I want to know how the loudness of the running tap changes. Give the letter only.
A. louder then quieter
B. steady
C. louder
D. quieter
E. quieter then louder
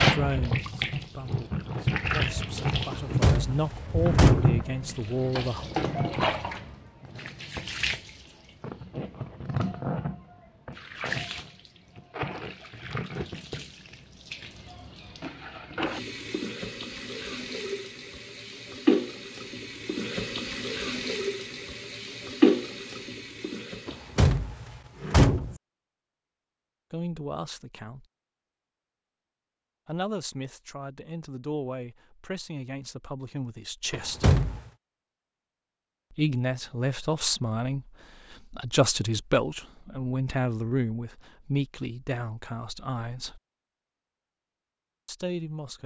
E.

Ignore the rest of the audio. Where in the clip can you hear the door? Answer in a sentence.
The door can be heard from 2.9 to 4.5 s, from 23.9 to 25.6 s and from 33.9 to 34.6 s.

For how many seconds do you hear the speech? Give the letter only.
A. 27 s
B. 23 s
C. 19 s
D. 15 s
C.